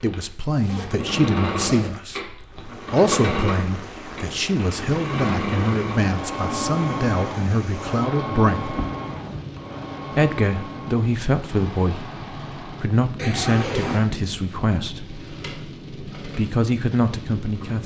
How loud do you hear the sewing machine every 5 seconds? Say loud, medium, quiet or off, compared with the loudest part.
loud, loud, medium, quiet.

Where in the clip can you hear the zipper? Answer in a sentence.
The zipper can be heard from 0.5 to 2.5 s, from 8.7 to 9.6 s and from 13.2 to 14.1 s.